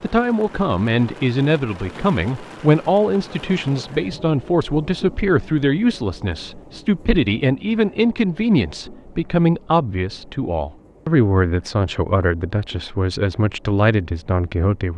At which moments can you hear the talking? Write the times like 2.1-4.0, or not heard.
0.0-14.9.